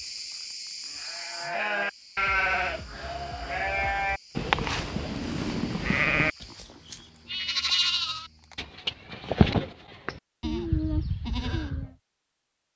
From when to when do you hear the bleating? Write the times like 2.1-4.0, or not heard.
0.8-11.9.